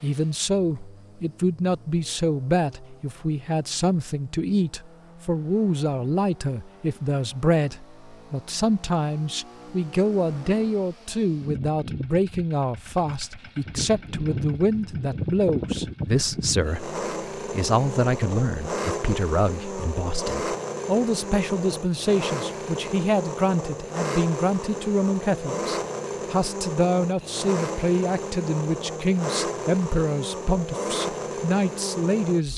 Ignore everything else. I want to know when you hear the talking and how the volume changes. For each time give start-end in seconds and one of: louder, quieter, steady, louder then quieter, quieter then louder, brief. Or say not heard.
0.0-32.5 steady.